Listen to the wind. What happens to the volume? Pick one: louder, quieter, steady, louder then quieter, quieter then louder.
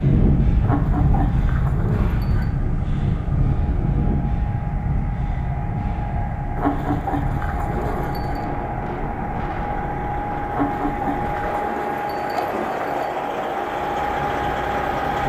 quieter.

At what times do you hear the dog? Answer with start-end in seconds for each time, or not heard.
0.6-2.5, 6.5-8.4, 10.5-13.1.